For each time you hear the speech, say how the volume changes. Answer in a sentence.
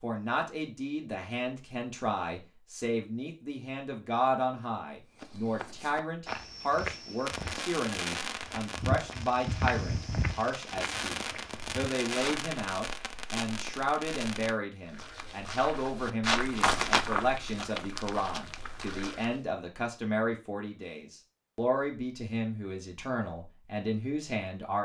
You can hear the speech from 0.0 to 24.8 s, at a steady volume.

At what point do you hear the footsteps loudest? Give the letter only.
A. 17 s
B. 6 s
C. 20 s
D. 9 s
A.